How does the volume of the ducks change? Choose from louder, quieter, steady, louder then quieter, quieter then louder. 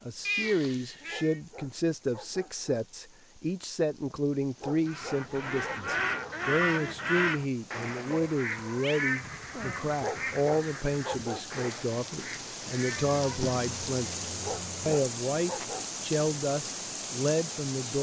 quieter.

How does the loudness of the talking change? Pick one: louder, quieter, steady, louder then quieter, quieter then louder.
steady.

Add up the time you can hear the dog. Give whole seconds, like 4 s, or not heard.
7 s.